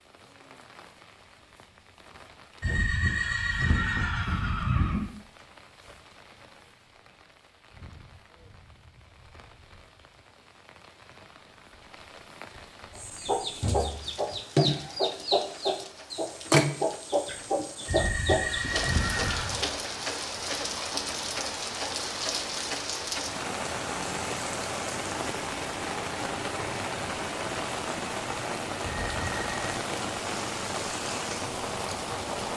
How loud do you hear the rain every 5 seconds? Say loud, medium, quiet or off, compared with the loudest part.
quiet, quiet, quiet, medium, loud, loud, loud.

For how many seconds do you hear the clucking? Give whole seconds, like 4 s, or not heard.
7 s.